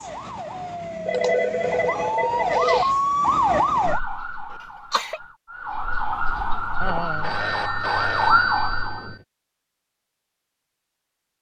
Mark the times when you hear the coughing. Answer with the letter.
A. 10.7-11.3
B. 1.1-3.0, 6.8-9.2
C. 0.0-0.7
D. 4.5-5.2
D.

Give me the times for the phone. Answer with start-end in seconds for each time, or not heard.
1.1-3.0, 6.8-9.2.